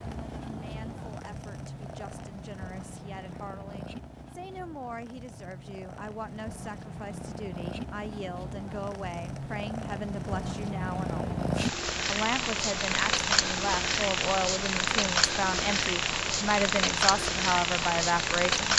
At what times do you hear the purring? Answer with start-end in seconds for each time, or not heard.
0.0-18.7.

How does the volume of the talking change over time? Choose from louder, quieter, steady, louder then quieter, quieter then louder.
louder.